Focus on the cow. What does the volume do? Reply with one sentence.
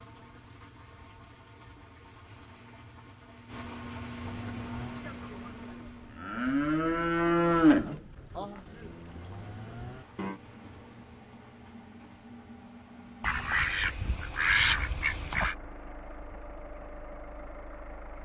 The volume of the cow goes up, then down.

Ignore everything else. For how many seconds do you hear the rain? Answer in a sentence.
The rain can't be heard in this clip.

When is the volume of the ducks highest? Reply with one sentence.
The volume of the ducks peaks at 15 seconds.